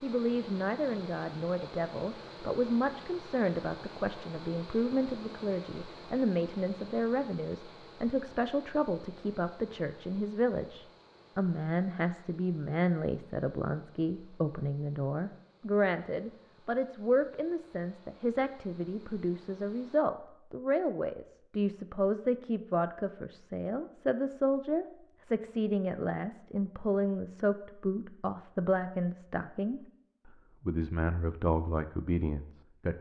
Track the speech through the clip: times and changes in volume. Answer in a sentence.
You can hear the speech from 0.0 to 32.9 s, at a steady volume.